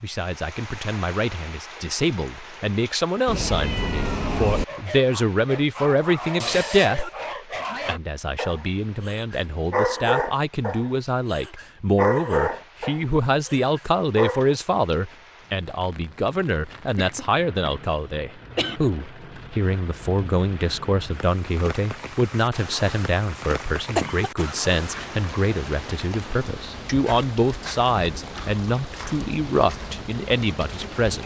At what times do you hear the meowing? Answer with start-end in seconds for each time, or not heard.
3.2-4.7.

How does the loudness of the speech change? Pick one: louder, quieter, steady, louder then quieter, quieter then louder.
steady.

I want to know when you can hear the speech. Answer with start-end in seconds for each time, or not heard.
0.0-7.0, 7.8-31.2.